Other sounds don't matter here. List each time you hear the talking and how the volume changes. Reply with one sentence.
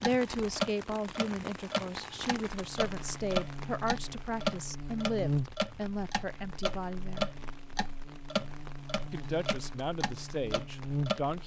The talking can be heard from 0.0 to 7.3 s, at a steady volume; and briefly from 9.1 to 11.4 s.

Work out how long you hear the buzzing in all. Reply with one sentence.
You can hear the buzzing for 9 seconds altogether.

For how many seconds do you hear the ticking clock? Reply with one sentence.
The ticking clock can be heard for 11 seconds in total.